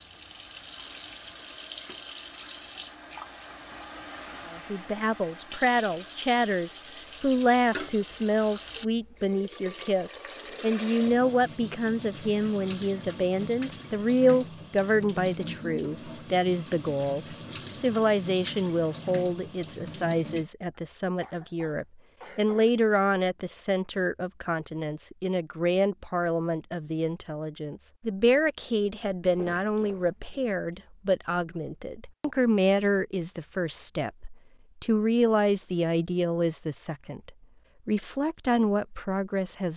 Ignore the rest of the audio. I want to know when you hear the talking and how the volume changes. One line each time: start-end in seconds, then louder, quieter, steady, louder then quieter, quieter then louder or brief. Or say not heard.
4.5-39.7 steady.